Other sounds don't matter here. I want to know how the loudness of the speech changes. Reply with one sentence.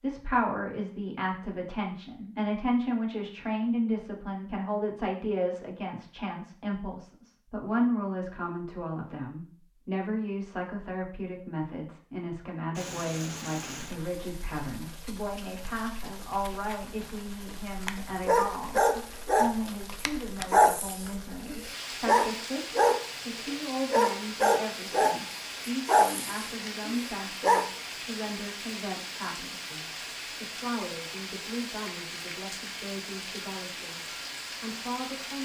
The volume of the speech goes down.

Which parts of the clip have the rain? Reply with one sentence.
You can hear the rain from 12.8 to 35.3 s.